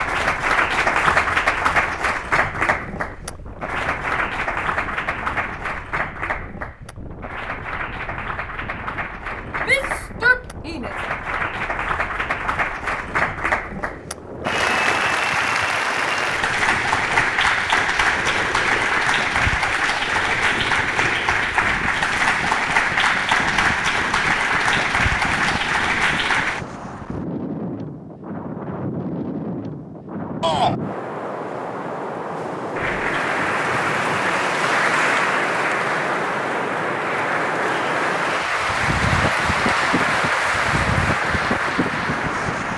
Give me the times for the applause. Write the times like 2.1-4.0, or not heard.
0.0-26.6, 32.8-42.7.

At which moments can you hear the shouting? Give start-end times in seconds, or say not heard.
9.6-10.9, 30.4-30.8.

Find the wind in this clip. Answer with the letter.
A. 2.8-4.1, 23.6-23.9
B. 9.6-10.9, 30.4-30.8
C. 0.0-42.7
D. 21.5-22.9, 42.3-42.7
C.